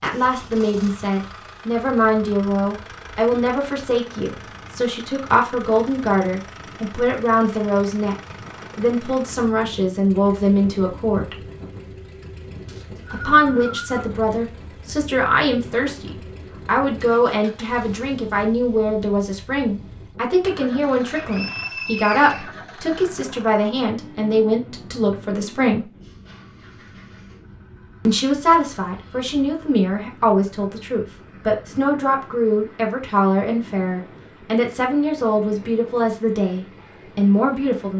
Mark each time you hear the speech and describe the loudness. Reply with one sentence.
You can hear the speech from 0.0 to 11.3 s, at a steady volume; from 13.1 to 25.9 s, at a steady volume; and from 28.1 to 37.9 s, at a steady volume.